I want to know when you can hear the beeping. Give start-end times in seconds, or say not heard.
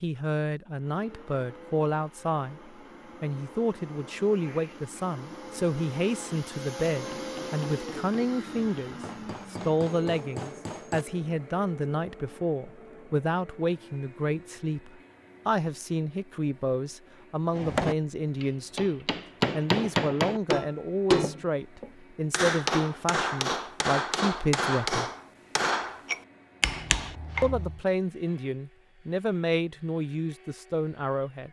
not heard.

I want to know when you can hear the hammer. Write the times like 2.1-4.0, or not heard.
6.9-11.1, 17.5-27.8.